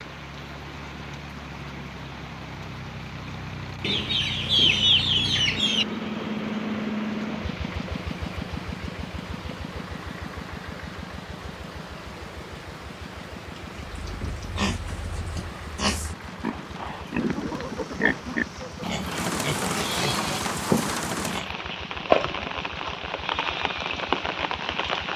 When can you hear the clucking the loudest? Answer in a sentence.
The volume of the clucking peaks at 5 seconds.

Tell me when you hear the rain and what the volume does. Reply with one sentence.
You can hear the rain from 0.0 to 25.1 s, getting louder.